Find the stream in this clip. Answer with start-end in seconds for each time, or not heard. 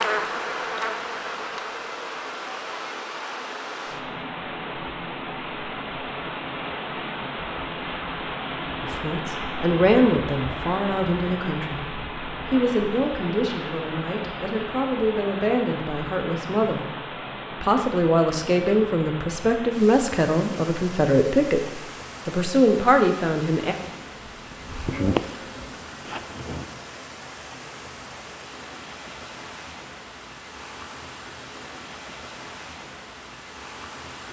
0.1-34.2.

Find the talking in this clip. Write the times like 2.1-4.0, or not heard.
8.8-23.8.